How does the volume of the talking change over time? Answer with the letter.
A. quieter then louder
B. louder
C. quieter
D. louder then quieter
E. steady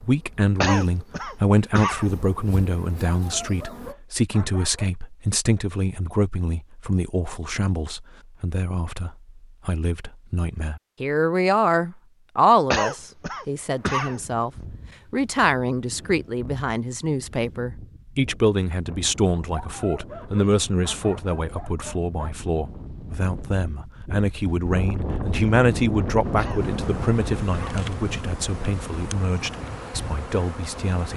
E.